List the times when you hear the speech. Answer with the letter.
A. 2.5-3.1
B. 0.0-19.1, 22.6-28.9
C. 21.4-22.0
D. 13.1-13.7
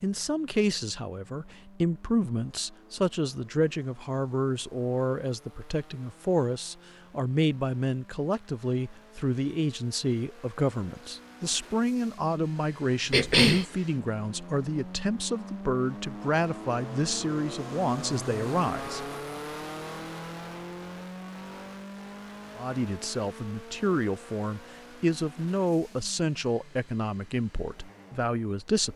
B.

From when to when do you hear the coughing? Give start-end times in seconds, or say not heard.
13.1-13.7.